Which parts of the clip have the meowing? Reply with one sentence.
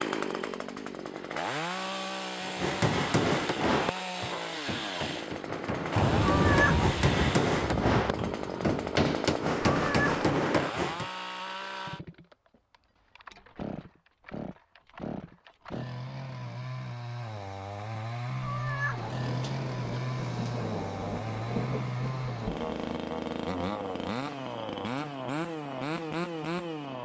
You can hear the meowing from 6.2 to 6.9 s, from 9.7 to 10.2 s and from 18.4 to 19.1 s.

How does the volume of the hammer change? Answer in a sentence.
The loudness of the hammer goes down, then up.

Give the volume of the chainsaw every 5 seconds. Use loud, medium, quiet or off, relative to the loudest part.
loud, loud, medium, loud, loud, loud.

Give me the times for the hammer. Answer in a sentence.
The hammer can be heard from 2.4 to 11.1 s.